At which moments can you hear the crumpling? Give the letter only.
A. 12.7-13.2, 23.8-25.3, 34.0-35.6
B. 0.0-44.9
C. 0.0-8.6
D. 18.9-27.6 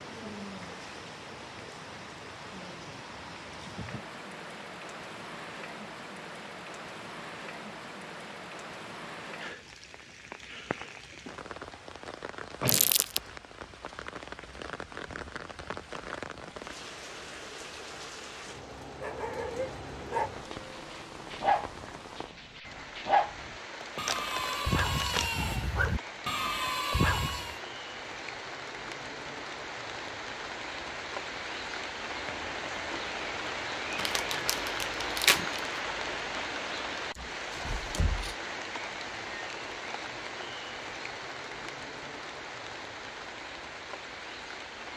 A.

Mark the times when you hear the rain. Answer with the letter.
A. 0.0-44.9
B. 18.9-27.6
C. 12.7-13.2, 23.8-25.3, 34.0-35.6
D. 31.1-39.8
A.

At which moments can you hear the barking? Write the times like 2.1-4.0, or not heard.
18.9-27.6.